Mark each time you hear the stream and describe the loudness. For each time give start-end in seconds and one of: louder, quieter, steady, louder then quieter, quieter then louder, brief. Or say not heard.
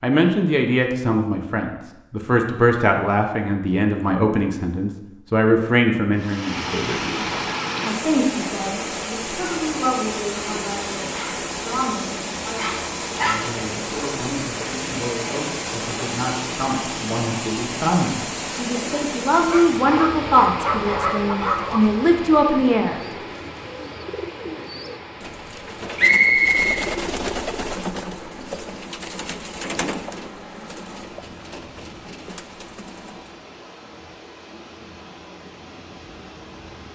6.2-36.8 quieter.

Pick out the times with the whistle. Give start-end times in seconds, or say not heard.
25.9-26.8.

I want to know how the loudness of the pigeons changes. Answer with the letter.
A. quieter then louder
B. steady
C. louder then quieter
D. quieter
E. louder
C.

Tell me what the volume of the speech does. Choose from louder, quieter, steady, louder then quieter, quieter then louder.
quieter then louder.